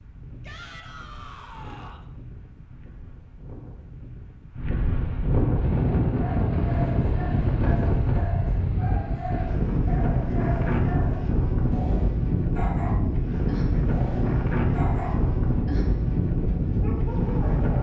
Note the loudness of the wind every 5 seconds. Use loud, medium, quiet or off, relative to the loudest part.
quiet, loud, loud, loud.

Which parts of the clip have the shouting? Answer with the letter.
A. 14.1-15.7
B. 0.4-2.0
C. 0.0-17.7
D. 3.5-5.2
B.